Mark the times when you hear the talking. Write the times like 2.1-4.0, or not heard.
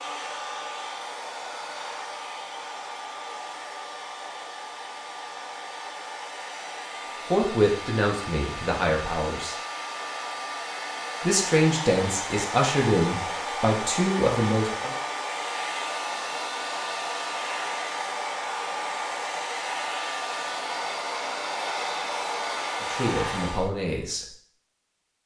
7.3-9.6, 11.2-14.9, 22.8-24.2.